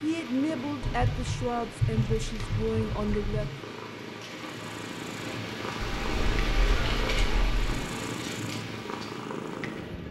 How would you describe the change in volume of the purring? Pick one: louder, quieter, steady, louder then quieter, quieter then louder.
louder.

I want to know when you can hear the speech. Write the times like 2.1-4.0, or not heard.
0.0-3.5.